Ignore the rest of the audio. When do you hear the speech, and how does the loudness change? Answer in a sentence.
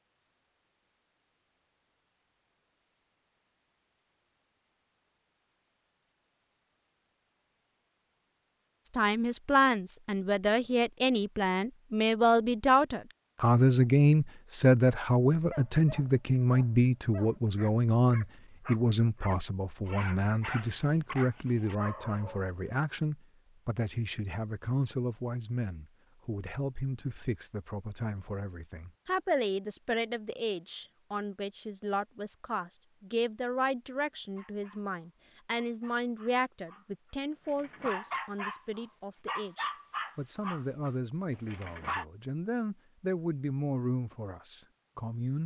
You can hear the speech from 8.8 to 45.4 s, getting quieter.